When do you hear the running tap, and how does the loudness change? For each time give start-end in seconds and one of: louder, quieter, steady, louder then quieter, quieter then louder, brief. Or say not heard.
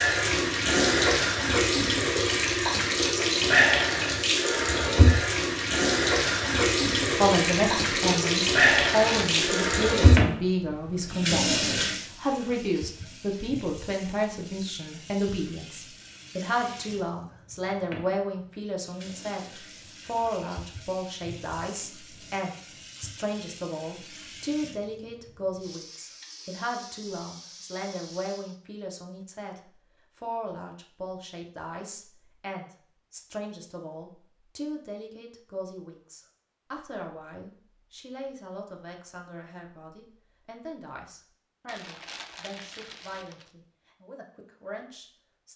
0.0-28.6 quieter.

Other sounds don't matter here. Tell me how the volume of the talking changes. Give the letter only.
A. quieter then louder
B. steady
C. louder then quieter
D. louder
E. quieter
E.